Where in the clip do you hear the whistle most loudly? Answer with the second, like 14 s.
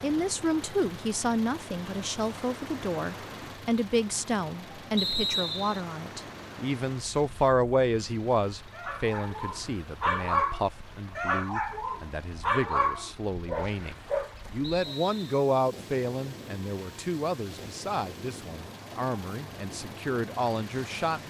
5 s.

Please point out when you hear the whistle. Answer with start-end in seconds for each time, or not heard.
5.0-5.8, 14.6-15.5.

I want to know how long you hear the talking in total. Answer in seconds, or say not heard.
21 s.